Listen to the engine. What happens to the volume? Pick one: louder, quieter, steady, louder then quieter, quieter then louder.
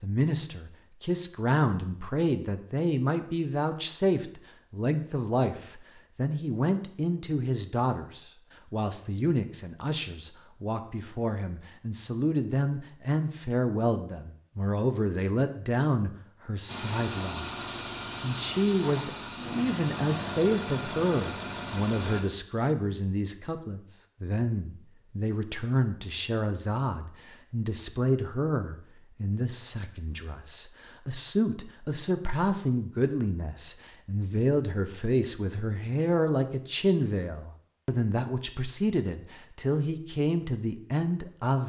steady.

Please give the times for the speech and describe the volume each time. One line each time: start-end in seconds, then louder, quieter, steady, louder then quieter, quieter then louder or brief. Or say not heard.
0.0-41.6 steady.